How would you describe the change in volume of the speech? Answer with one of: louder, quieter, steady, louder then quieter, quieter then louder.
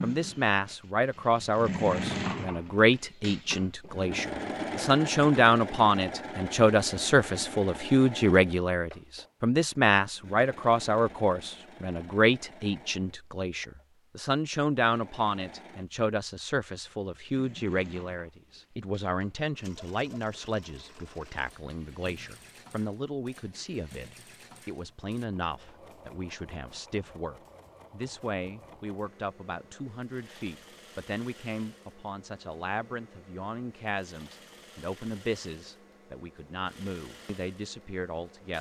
quieter.